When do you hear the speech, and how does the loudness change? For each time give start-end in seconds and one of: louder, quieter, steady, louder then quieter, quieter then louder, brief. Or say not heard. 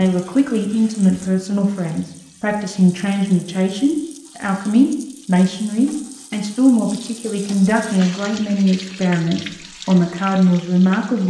0.0-11.2 steady.